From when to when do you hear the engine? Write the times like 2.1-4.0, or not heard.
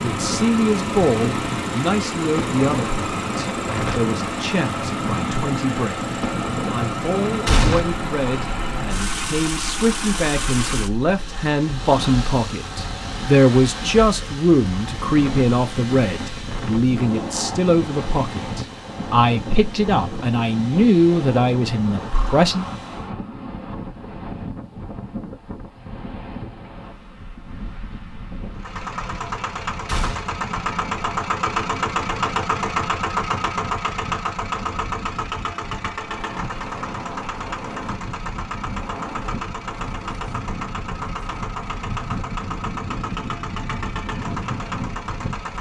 0.0-23.1, 28.6-45.5.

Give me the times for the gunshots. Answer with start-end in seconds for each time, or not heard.
7.5-8.0, 29.9-30.4.